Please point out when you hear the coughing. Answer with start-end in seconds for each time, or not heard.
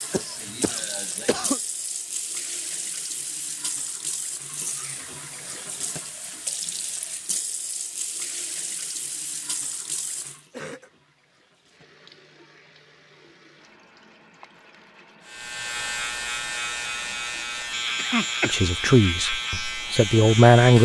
0.1-1.6, 10.5-10.9, 17.9-18.9.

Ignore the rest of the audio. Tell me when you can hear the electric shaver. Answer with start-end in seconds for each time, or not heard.
15.2-20.7.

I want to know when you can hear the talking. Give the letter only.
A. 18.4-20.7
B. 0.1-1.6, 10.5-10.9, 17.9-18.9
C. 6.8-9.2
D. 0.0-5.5
A.